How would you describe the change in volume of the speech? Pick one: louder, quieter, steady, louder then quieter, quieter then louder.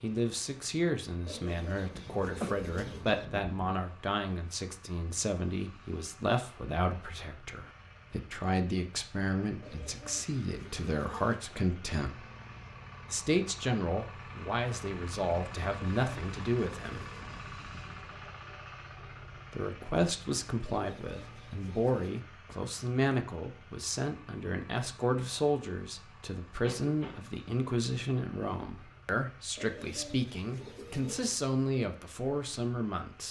steady.